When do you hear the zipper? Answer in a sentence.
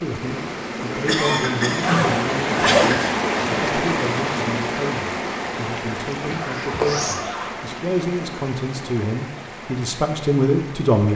You can hear the zipper from 1.8 to 3.0 s and from 6.3 to 7.7 s.